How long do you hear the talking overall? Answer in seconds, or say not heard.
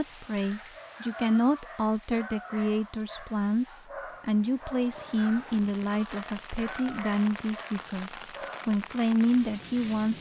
10 s.